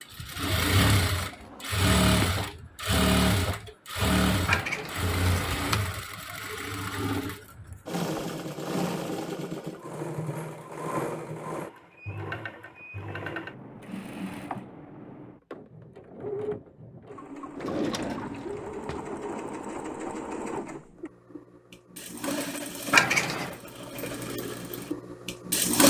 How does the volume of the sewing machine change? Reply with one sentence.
The volume of the sewing machine goes down.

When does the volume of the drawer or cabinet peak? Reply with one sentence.
The volume of the drawer or cabinet peaks at 18 seconds.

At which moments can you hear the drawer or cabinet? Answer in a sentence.
The drawer or cabinet can be heard from 1.2 to 2.4 s and from 17.6 to 19.0 s.